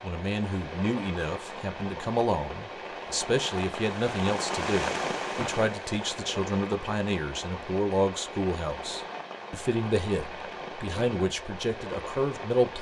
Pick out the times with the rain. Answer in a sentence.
You can hear the rain from 0.0 to 12.7 s.